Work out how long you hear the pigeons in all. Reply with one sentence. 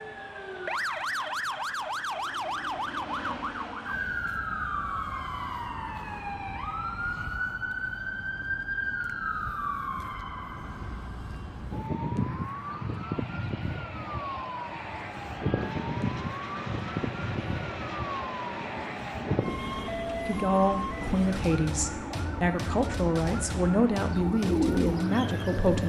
You can hear the pigeons for 2 seconds altogether.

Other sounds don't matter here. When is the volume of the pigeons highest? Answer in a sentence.
The loudest moment of the pigeons is at 25 seconds.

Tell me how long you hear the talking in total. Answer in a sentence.
You can hear the talking for 6 seconds altogether.